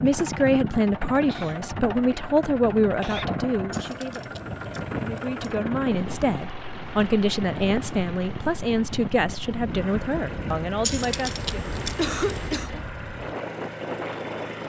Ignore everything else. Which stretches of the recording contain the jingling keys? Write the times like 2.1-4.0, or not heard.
3.7-5.5, 10.8-12.5.